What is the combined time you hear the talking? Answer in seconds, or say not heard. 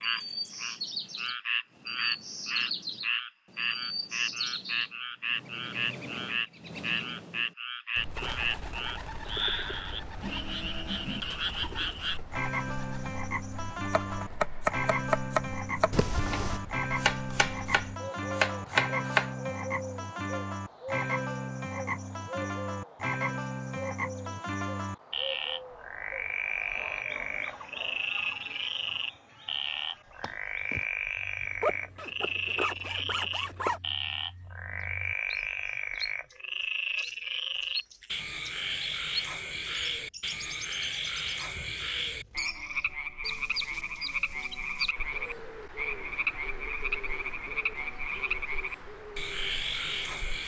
not heard.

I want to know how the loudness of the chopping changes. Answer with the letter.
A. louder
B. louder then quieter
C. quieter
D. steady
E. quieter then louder
E.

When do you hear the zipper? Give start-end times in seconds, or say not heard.
15.9-16.6, 31.4-33.8.